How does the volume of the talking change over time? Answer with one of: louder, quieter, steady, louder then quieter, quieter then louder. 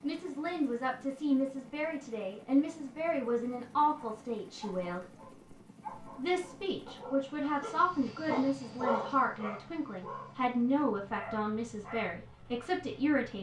steady.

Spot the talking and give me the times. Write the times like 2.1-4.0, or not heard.
0.0-5.1, 6.2-13.3.